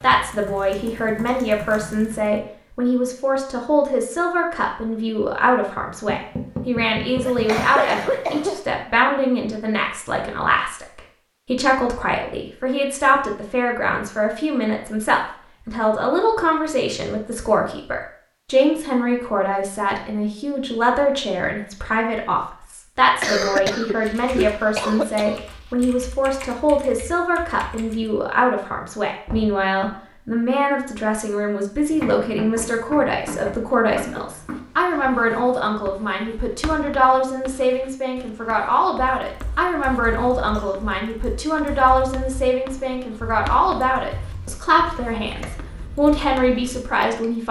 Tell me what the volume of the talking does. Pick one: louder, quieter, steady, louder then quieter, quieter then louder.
steady.